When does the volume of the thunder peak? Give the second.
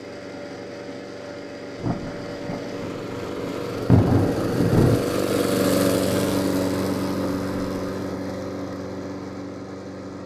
4 s.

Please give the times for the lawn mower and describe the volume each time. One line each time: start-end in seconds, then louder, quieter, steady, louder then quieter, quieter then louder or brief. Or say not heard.
0.0-10.2 louder then quieter.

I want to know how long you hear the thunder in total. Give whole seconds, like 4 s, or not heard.
3 s.